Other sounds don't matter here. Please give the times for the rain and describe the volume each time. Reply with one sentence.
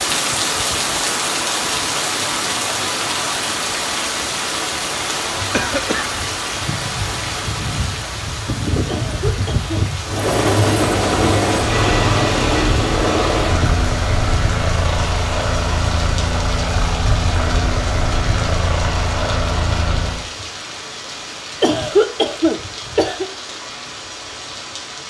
The rain can be heard from 0.0 to 25.0 s, getting quieter.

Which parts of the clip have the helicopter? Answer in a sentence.
The helicopter can be heard from 10.0 to 20.2 s.